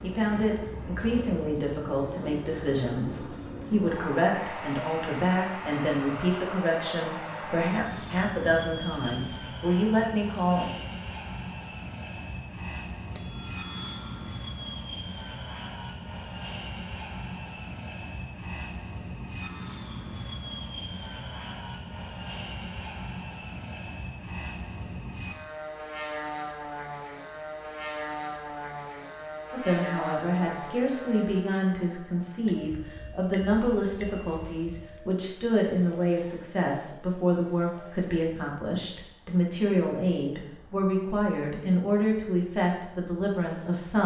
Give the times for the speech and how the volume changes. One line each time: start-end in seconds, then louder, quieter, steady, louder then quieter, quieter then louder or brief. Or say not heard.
0.0-10.7 steady
29.5-44.0 steady.